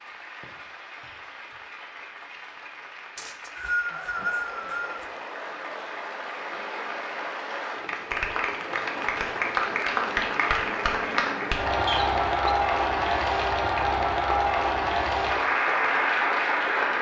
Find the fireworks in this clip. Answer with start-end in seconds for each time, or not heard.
not heard.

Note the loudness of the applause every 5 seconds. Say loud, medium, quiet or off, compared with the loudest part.
quiet, medium, loud, loud.